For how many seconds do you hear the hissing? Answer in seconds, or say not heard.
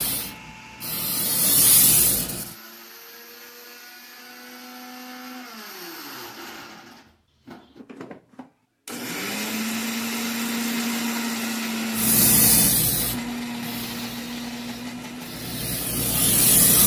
7 s.